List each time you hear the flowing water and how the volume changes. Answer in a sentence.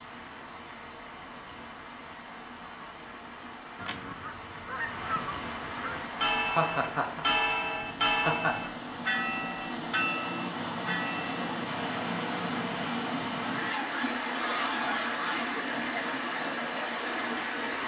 The flowing water can be heard from 0.0 to 17.8 s, getting louder.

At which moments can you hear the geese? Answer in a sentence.
The geese can be heard from 3.8 to 6.2 s and from 13.4 to 15.6 s.